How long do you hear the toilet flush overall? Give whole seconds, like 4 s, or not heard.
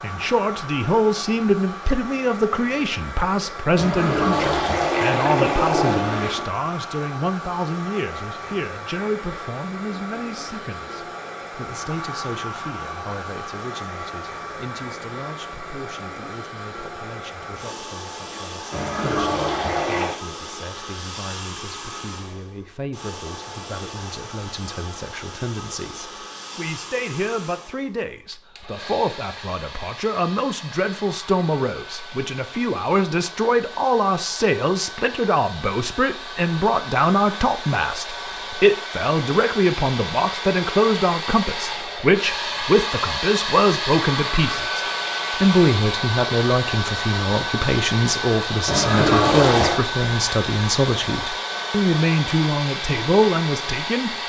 5 s.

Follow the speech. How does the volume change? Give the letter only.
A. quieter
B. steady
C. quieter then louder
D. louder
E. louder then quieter
C.